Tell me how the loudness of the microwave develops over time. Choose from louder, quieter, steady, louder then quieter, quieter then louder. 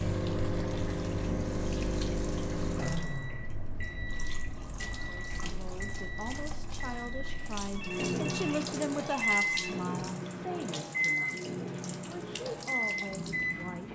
quieter then louder.